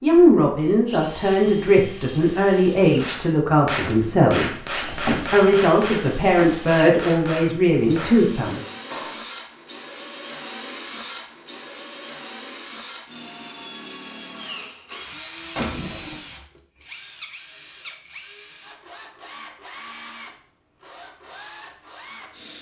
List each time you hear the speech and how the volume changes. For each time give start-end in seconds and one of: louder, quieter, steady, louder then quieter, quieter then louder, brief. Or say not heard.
0.0-8.6 steady.